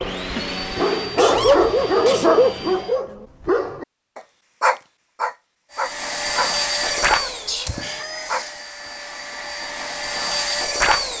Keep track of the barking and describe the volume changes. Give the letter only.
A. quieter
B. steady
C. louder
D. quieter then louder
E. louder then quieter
A.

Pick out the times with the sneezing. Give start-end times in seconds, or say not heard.
1.1-2.5, 7.2-7.8.